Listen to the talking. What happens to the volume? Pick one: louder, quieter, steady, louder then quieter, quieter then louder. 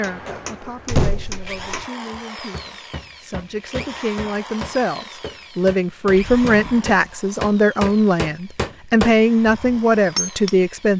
louder.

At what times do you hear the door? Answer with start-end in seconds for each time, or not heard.
0.1-1.8, 6.2-7.0.